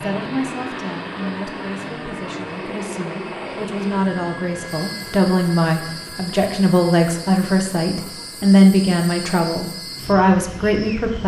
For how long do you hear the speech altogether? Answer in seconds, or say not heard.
11 s.